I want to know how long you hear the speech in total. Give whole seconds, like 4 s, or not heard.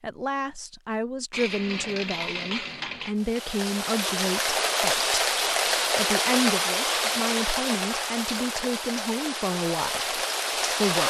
10 s.